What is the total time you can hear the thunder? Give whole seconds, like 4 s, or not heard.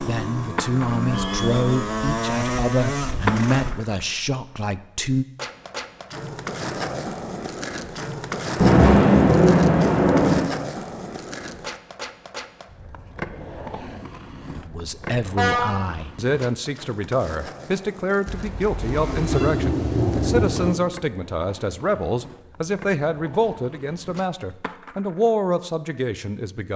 4 s.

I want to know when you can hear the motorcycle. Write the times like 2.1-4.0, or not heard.
0.0-3.9.